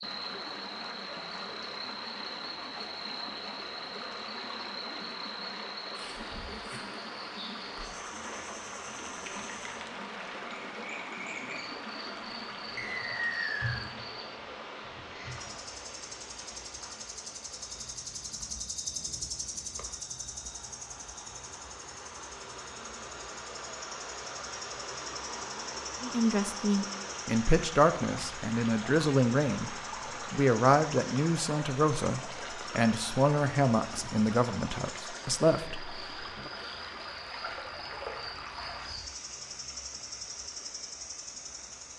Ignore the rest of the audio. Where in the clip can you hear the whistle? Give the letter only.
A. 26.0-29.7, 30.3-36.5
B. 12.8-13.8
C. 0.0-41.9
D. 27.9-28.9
B.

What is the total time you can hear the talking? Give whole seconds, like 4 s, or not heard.
10 s.